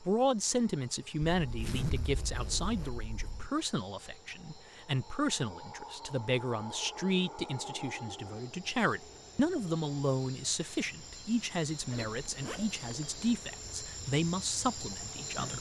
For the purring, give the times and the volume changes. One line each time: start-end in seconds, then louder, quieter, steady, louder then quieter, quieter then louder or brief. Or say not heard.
not heard.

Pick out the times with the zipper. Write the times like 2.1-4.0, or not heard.
1.4-3.5, 11.8-13.2.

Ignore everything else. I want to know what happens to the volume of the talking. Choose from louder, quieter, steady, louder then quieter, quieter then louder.
steady.